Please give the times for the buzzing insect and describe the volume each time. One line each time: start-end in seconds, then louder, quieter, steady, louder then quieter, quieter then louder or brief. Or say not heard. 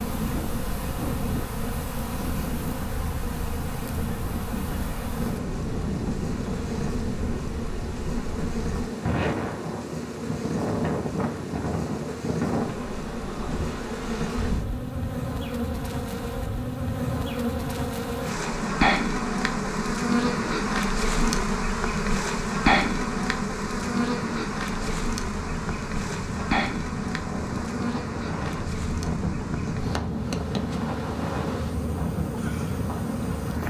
0.0-33.6 louder then quieter.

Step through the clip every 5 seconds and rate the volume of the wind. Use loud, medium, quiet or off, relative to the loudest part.
loud, loud, loud, medium, medium, loud, loud.